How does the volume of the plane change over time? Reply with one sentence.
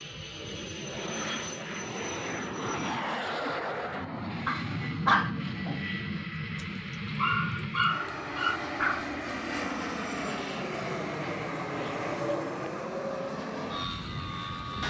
The loudness of the plane stays about the same.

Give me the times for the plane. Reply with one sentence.
The plane can be heard from 0.0 to 14.8 s.